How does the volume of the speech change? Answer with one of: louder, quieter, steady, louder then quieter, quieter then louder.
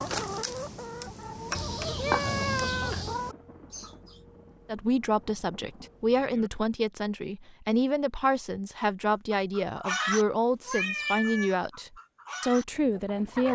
steady.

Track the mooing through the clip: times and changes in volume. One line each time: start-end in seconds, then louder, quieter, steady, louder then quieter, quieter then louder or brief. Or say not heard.
not heard.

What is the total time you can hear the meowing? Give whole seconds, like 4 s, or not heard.
3 s.